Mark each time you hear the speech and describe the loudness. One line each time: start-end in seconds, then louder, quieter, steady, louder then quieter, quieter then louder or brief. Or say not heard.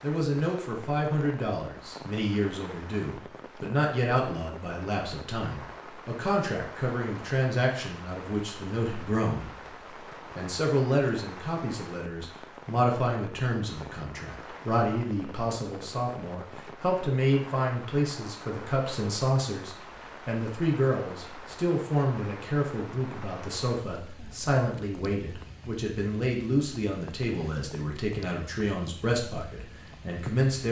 0.0-9.5 steady
10.3-30.6 steady.